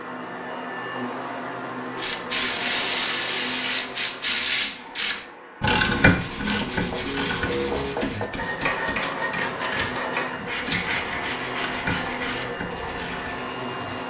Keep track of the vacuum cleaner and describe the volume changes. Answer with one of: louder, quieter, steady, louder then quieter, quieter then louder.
quieter then louder.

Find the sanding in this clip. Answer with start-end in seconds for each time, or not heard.
5.8-14.0.